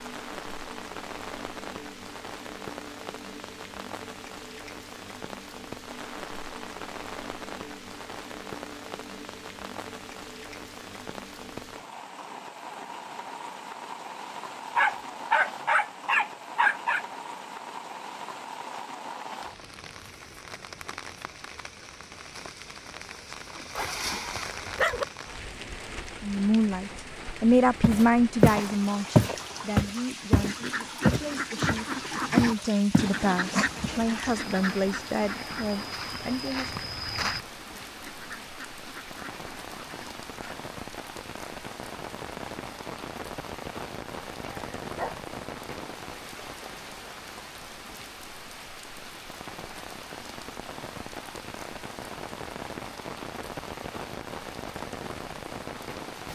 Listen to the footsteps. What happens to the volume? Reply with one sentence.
The loudness of the footsteps goes down, then up.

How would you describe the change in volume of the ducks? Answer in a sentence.
The volume of the ducks goes down.